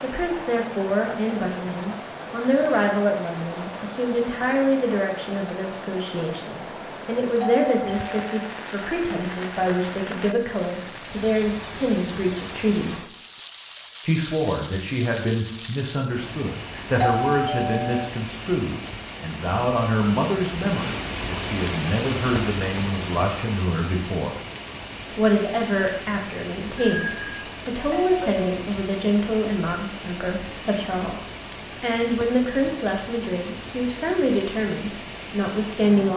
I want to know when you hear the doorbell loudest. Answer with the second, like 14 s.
17 s.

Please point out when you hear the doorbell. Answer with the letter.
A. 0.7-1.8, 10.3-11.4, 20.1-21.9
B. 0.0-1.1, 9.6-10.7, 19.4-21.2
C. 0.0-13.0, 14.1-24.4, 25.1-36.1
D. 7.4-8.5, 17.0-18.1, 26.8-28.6
D.